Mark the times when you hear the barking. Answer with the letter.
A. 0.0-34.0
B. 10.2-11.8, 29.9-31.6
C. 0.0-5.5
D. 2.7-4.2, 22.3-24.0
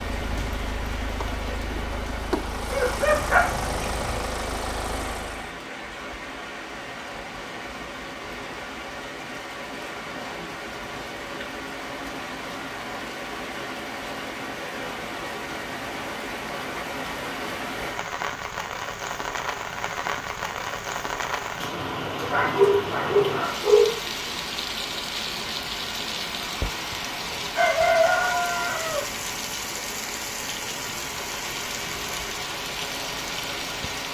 D.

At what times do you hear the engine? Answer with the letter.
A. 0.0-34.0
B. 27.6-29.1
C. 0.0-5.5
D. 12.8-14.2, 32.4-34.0
C.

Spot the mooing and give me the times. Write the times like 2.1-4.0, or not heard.
not heard.